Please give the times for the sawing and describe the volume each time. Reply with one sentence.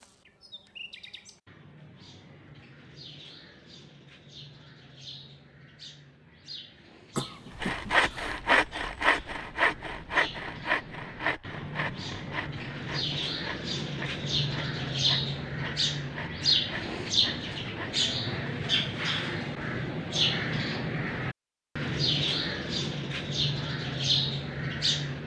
You can hear the sawing from 7.5 to 18.1 s, getting quieter.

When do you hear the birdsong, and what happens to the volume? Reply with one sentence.
You can hear the birdsong from 0.0 to 25.2 s, getting louder.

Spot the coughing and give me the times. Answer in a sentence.
The coughing can be heard from 7.2 to 8.4 s.